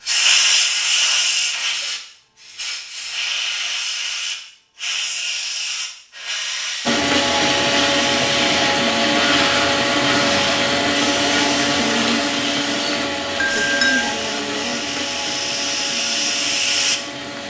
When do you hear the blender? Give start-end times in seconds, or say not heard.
6.8-17.4.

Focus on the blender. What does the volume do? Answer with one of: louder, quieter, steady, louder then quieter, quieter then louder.
quieter.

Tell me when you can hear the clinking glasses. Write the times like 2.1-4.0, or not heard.
13.3-14.1.